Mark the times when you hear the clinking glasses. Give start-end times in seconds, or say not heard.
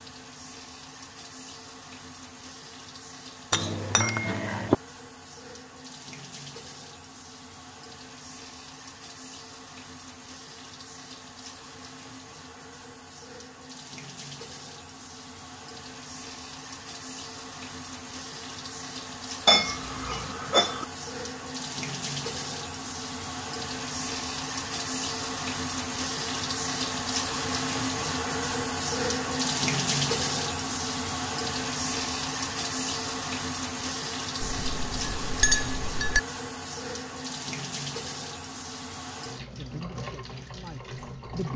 3.5-4.8, 19.4-20.9, 34.4-36.2.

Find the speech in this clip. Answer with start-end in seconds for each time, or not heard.
39.5-41.5.